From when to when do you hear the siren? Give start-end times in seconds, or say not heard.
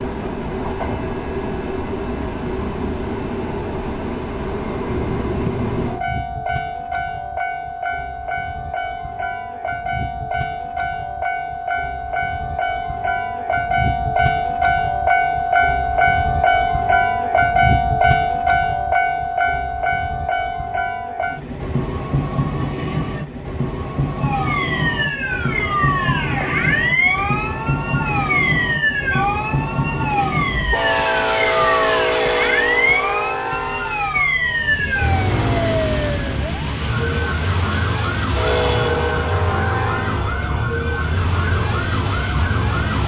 24.2-43.0.